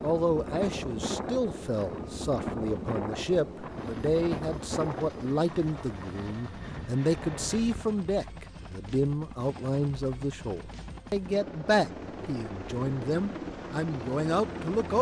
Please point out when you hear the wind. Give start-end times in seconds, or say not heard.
0.0-7.8.